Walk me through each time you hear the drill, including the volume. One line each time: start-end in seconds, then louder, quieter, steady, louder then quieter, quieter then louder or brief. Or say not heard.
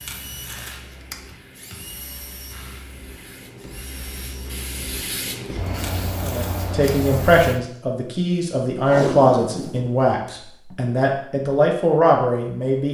0.0-4.7 quieter.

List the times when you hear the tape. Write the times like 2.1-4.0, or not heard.
0.1-1.2, 5.8-6.9, 8.8-10.8.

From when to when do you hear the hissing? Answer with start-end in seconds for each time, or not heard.
0.0-7.6.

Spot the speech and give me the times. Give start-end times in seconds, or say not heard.
6.2-12.8.